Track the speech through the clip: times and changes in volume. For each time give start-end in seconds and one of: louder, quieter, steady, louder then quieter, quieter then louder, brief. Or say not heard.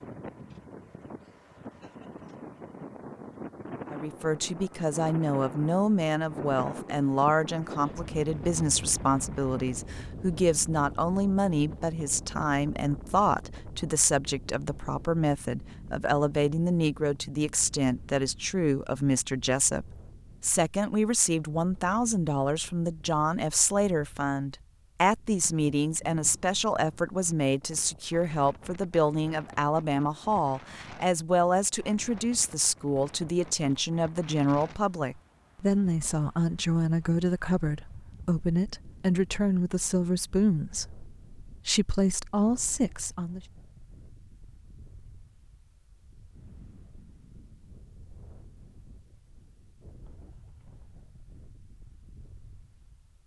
3.9-43.4 steady.